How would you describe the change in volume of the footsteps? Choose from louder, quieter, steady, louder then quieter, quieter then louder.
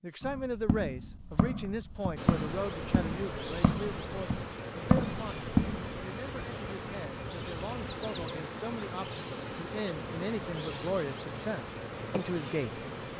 louder.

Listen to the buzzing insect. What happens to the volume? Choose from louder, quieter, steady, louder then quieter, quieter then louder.
steady.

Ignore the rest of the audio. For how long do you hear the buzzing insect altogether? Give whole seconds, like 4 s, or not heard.
11 s.